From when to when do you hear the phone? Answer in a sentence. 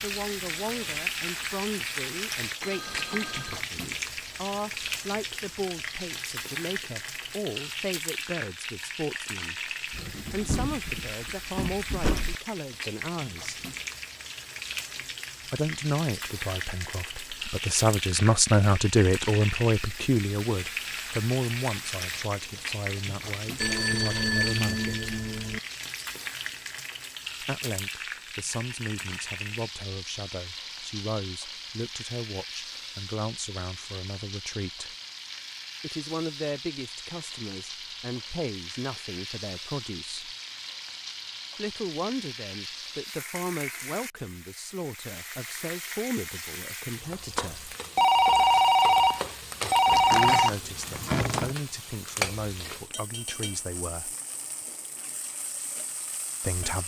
The phone can be heard from 2.6 to 3.6 s, from 23.6 to 25.6 s and from 48.0 to 50.5 s.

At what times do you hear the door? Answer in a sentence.
The door can be heard from 9.9 to 12.3 s and from 49.9 to 51.5 s.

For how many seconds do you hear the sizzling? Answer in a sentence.
The sizzling can be heard for 57 seconds in total.